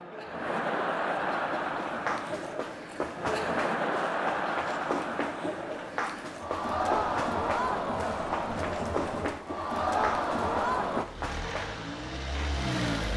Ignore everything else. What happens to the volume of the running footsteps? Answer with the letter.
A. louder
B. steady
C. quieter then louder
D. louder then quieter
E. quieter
B.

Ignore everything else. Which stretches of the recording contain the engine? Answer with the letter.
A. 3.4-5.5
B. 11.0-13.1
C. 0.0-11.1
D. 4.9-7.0
B.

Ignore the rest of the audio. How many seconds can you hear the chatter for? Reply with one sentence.
The chatter can be heard for 11 seconds in total.